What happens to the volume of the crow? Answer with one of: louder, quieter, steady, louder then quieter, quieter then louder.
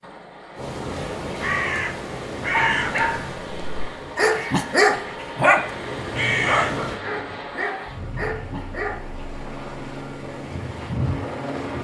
quieter then louder.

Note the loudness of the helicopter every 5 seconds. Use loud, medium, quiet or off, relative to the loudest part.
medium, medium, loud.